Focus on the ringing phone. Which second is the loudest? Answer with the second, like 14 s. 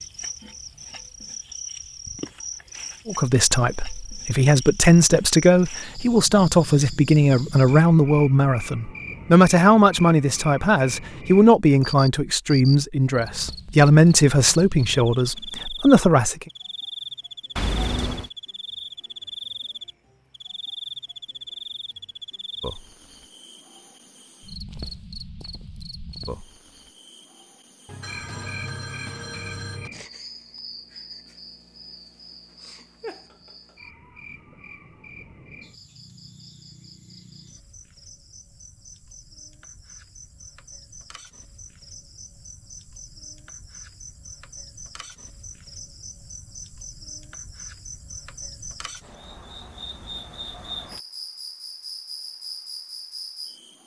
18 s.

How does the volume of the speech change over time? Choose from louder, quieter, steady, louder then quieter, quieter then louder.
steady.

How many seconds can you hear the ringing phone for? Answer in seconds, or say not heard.
3 s.